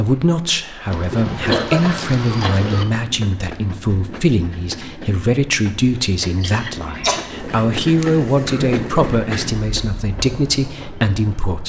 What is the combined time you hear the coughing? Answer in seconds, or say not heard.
2 s.